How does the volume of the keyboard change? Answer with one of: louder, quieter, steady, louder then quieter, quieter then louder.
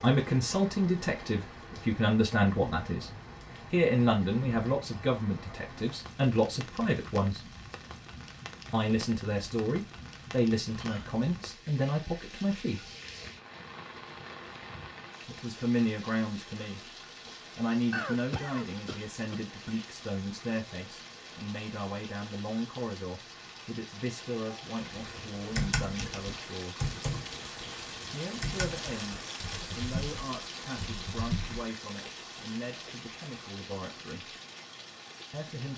quieter.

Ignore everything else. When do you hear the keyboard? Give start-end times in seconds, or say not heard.
24.9-31.6.